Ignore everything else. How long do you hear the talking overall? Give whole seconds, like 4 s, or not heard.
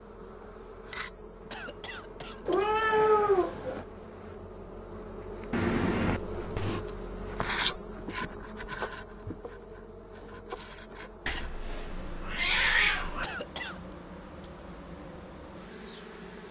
not heard.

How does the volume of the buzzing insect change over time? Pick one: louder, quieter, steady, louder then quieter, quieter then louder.
louder then quieter.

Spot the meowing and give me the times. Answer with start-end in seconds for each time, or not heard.
2.5-3.9, 5.5-6.8, 11.2-13.2.